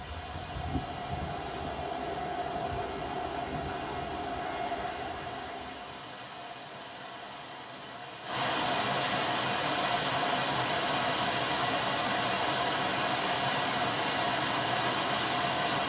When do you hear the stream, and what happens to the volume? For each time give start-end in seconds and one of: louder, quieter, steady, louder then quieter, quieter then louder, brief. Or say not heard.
0.0-15.8 louder.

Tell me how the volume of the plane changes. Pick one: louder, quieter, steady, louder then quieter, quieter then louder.
steady.